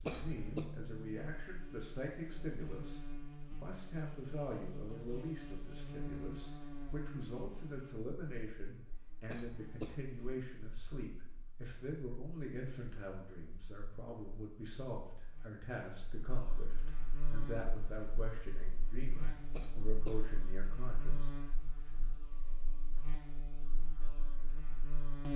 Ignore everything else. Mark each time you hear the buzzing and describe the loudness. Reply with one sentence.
The buzzing can be heard from 0.0 to 25.3 s, getting quieter then louder.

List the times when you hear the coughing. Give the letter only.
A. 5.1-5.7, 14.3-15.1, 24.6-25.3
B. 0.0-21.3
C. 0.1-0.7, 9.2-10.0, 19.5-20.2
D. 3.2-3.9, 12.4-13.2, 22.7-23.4
C.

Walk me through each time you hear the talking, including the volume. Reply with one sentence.
You can hear the talking from 0.0 to 21.3 s, at a steady volume.